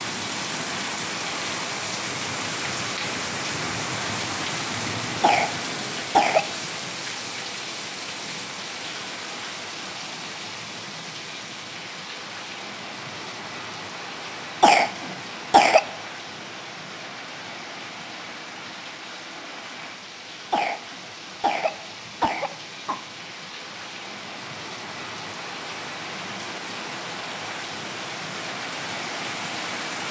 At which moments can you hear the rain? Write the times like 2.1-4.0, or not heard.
0.0-30.0.